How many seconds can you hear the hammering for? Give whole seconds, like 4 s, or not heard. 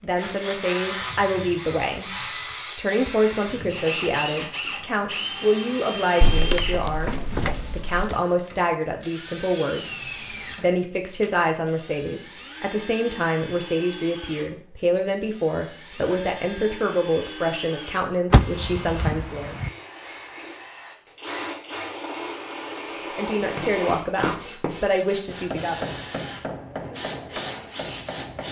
5 s.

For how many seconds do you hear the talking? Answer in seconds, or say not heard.
22 s.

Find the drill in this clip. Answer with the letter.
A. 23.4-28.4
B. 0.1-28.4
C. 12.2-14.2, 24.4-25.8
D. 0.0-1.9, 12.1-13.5
B.